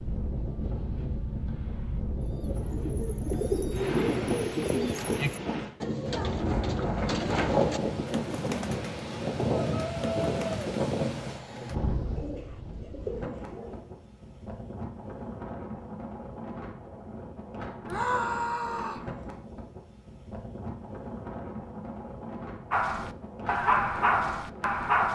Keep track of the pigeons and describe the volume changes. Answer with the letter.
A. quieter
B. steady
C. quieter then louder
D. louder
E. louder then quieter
A.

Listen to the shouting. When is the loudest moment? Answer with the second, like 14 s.
18 s.